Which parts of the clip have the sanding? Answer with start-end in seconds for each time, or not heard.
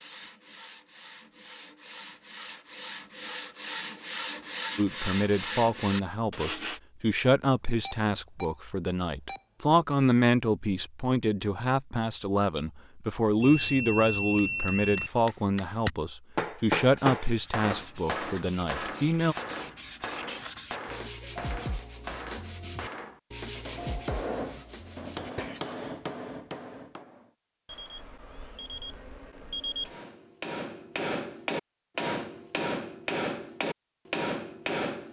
0.0-6.8, 16.8-25.9.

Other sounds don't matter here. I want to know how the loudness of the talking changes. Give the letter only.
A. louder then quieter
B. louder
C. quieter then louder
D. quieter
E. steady
E.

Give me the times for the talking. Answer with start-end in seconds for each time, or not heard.
4.8-19.4.